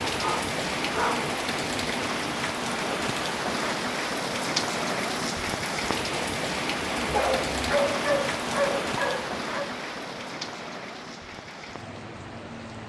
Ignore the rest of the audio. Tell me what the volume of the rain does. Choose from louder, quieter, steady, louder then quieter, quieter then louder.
quieter.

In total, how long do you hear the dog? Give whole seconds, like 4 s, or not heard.
4 s.